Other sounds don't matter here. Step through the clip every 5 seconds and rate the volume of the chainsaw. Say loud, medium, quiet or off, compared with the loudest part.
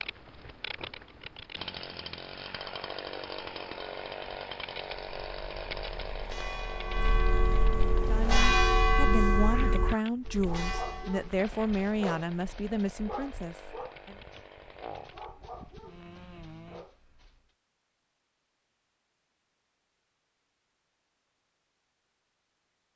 loud, loud, medium, medium, off.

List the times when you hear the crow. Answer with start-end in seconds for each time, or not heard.
not heard.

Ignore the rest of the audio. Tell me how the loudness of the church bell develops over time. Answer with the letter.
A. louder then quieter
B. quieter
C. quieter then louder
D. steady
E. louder
A.